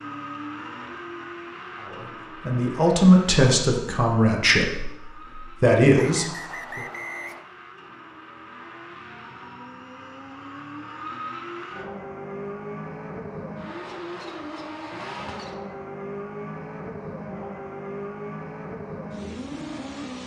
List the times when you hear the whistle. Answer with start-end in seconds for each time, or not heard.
6.0-7.5.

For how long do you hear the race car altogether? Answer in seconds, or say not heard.
20 s.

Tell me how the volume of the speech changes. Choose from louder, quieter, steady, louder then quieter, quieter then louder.
quieter then louder.